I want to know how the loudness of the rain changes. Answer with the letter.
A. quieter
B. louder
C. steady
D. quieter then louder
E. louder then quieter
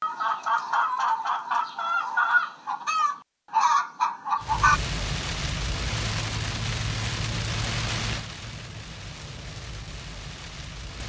A.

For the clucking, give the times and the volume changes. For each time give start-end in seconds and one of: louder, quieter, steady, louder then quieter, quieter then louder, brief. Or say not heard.
0.0-4.8 steady.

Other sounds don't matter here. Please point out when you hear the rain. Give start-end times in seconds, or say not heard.
4.4-11.0.